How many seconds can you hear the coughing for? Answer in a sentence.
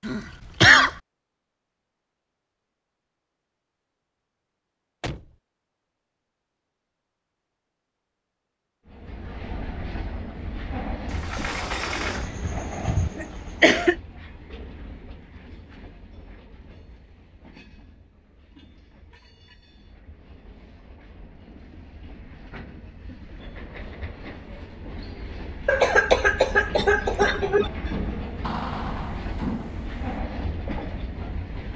The coughing can be heard for 5 seconds in total.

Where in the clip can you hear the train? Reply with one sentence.
The train can be heard from 8.8 to 31.7 s.